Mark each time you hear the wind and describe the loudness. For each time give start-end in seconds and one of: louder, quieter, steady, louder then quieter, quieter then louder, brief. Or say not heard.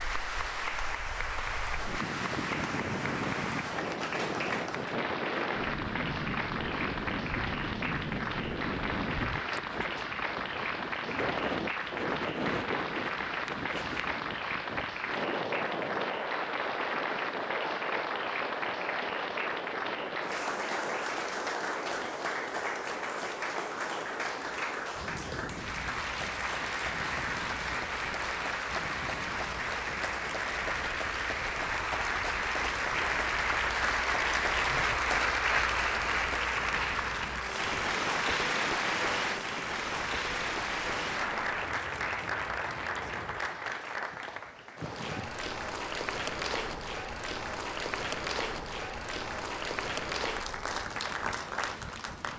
0.0-52.3 quieter.